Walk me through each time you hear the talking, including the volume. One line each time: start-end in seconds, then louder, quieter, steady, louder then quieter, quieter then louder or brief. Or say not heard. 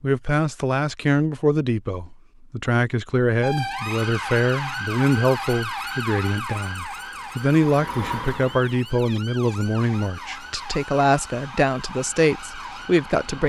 0.0-13.4 steady.